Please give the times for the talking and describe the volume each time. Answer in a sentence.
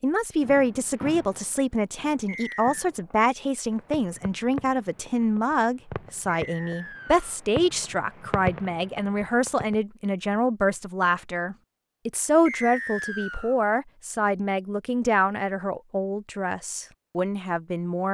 You can hear the talking from 0.0 to 18.0 s, at a steady volume.